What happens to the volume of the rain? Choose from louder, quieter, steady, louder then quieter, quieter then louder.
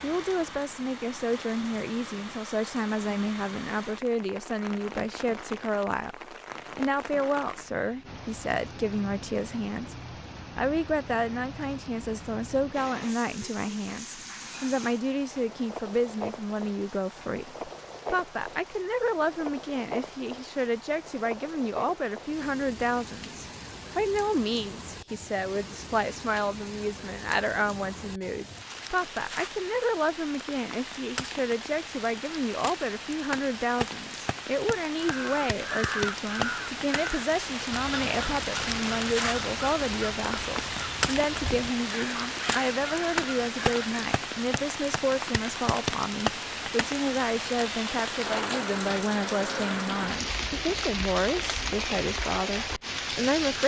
louder.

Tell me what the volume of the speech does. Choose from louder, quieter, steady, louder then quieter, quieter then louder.
steady.